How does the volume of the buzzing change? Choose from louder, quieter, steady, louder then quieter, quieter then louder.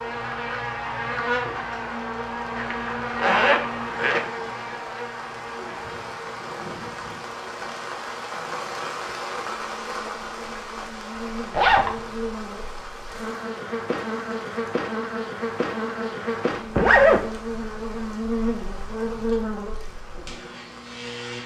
quieter then louder.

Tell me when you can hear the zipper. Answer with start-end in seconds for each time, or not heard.
2.5-4.2, 11.5-11.9, 16.8-17.2.